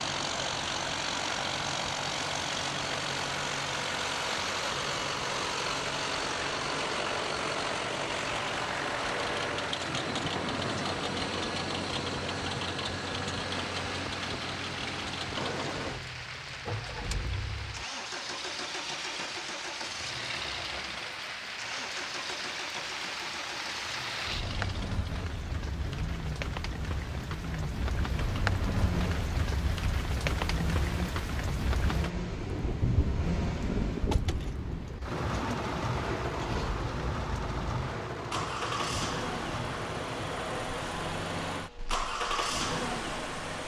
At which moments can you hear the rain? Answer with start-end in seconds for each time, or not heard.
0.0-43.6.